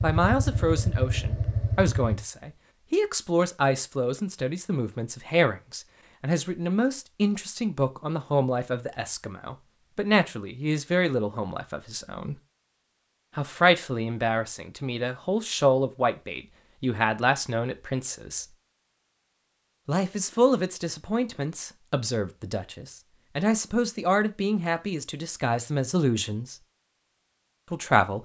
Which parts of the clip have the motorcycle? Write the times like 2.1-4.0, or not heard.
0.0-2.2.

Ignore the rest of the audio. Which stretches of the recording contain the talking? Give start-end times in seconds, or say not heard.
0.0-12.4, 13.3-18.4, 19.9-26.6, 27.7-28.2.